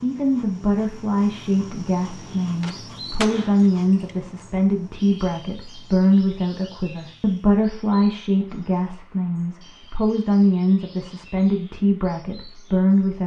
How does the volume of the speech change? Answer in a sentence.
The volume of the speech stays about the same.